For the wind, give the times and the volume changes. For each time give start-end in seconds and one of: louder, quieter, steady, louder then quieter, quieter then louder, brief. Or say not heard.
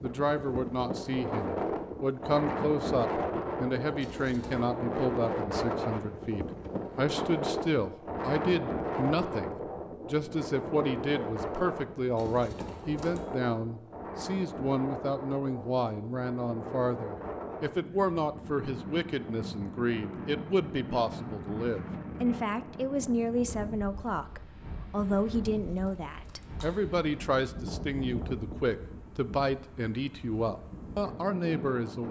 0.0-32.0 quieter.